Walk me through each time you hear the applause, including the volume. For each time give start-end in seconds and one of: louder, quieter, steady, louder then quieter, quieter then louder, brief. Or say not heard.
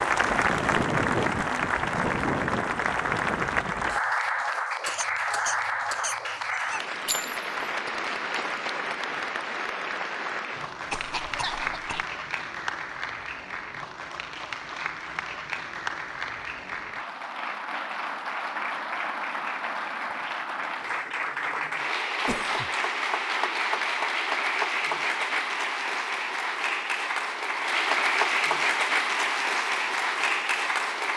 0.0-31.1 quieter then louder.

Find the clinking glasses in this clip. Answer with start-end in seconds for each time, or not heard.
7.0-7.5.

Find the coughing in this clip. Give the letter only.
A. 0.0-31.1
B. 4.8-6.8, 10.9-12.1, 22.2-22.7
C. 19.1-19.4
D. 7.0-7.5
B.